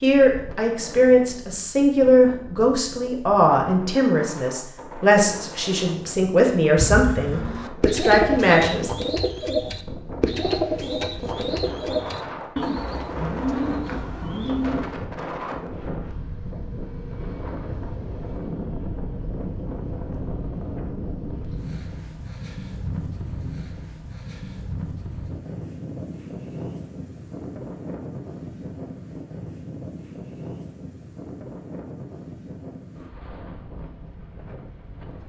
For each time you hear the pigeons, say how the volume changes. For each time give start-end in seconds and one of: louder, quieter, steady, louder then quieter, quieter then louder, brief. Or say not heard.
6.8-14.9 steady.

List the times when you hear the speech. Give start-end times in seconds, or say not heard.
0.0-8.9.